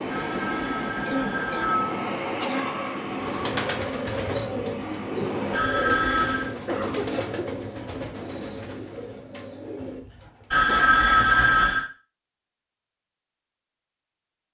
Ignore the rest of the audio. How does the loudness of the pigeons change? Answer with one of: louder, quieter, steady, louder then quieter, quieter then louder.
quieter.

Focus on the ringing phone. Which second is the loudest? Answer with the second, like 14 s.
11 s.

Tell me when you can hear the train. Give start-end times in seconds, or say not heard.
0.0-5.6.